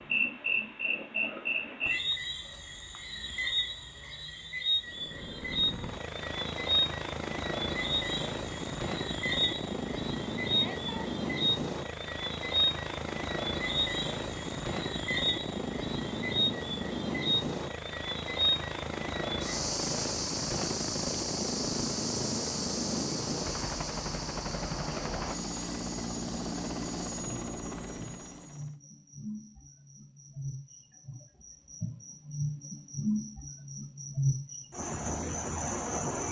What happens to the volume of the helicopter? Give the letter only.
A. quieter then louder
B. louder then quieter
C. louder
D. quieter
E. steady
E.